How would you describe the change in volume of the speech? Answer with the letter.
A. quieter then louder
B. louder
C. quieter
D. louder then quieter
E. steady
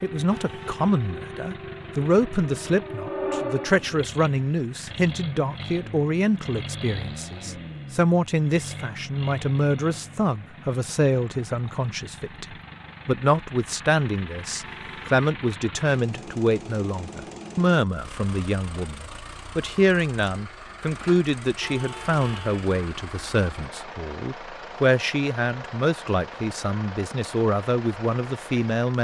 E.